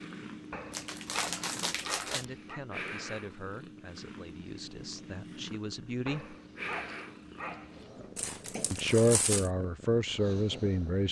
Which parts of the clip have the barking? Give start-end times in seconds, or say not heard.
0.5-2.6, 6.0-8.1.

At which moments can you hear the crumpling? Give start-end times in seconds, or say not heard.
0.7-2.2, 8.2-9.5.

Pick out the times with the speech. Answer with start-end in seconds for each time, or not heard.
2.0-6.3, 8.7-11.0.